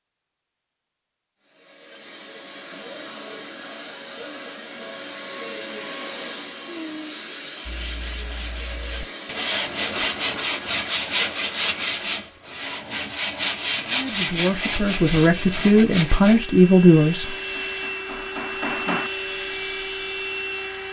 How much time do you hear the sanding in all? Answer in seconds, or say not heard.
9 s.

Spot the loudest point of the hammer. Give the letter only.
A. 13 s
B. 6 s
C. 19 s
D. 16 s
C.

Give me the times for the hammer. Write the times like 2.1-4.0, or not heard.
17.2-19.1.